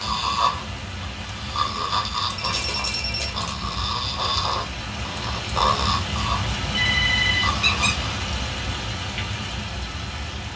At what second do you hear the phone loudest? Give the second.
7 s.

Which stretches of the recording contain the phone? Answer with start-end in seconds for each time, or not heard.
2.5-3.4, 6.7-7.5.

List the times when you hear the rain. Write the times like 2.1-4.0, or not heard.
0.0-10.5.